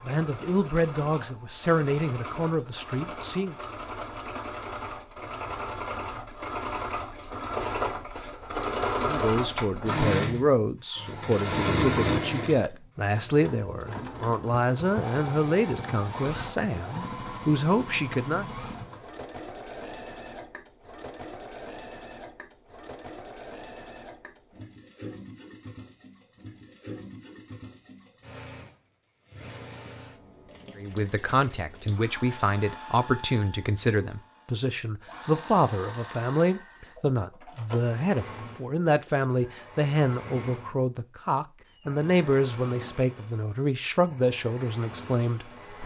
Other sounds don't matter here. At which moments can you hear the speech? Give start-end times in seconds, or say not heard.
0.0-3.5, 9.0-18.5, 30.8-45.8.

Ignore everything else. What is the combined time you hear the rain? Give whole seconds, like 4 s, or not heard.
not heard.